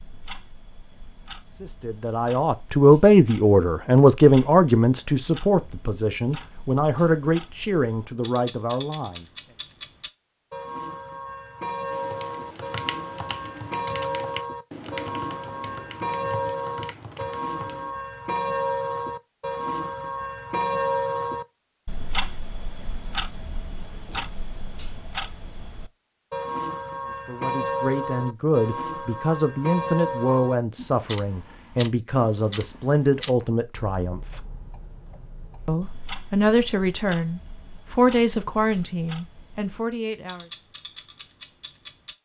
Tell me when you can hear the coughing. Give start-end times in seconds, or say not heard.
not heard.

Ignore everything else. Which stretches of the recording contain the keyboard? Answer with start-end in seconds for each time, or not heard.
11.9-17.9.